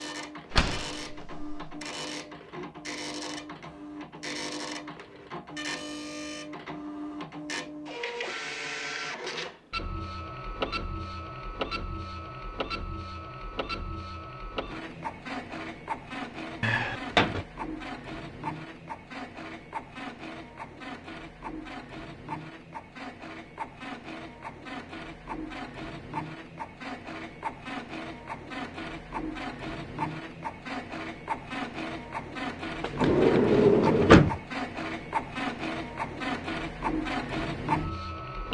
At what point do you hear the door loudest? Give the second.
34 s.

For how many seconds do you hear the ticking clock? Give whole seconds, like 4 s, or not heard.
not heard.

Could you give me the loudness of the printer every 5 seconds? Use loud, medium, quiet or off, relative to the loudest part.
medium, medium, medium, medium, medium, medium, loud, loud.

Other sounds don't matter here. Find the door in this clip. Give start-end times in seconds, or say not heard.
0.5-1.8, 16.6-17.4, 32.8-34.4.